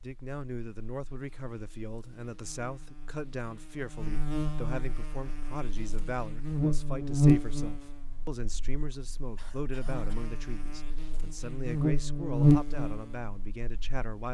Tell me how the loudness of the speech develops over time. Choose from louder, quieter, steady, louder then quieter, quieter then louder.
steady.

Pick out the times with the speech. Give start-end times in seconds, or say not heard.
0.0-14.2.